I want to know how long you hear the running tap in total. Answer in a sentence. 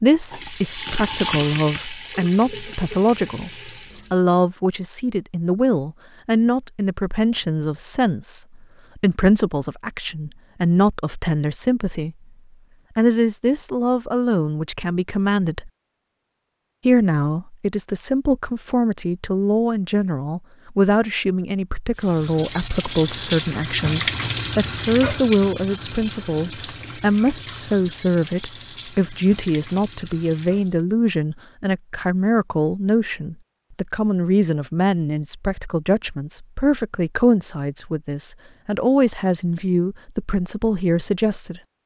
The running tap can be heard for 13 seconds in total.